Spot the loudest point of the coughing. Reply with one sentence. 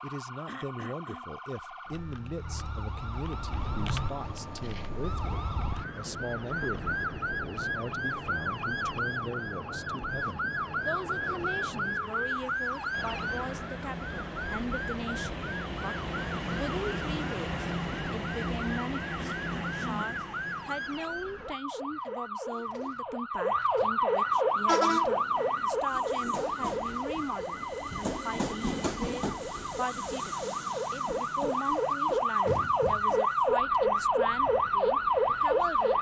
The volume of the coughing peaks at 20 seconds.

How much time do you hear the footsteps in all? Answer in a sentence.
The footsteps can't be heard in this clip.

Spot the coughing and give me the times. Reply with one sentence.
The coughing can be heard from 0.5 to 1.2 s and from 19.1 to 20.2 s.